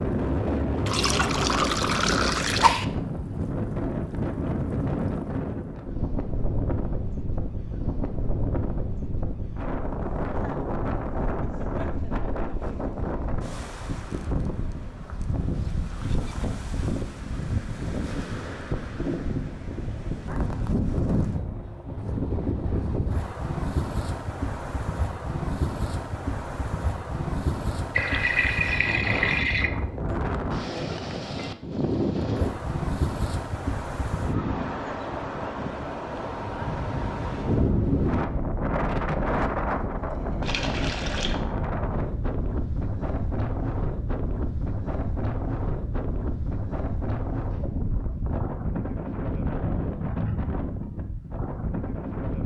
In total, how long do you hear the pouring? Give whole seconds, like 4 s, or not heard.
5 s.